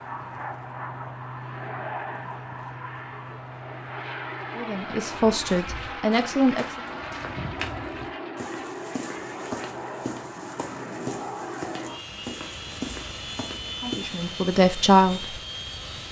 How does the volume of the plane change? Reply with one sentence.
The volume of the plane stays about the same.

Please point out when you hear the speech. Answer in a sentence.
The speech can be heard from 4.5 to 6.7 s and from 13.6 to 15.3 s.